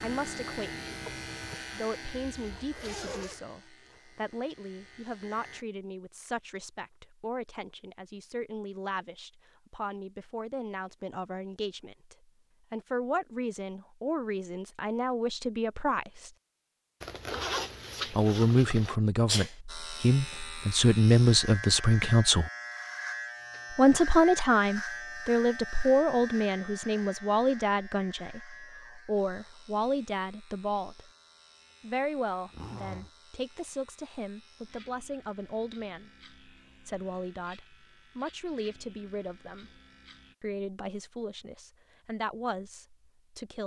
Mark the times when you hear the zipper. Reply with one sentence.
You can hear the zipper from 2.0 to 3.4 s, from 17.0 to 18.9 s and from 32.5 to 33.1 s.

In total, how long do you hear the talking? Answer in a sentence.
The talking can be heard for 39 seconds in total.